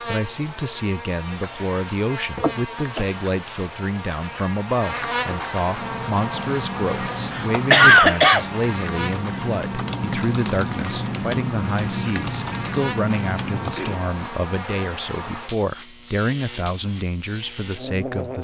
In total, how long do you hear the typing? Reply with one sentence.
The typing can be heard for 8 seconds in total.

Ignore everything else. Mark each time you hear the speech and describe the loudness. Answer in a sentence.
The speech can be heard from 0.1 to 18.4 s, at a steady volume.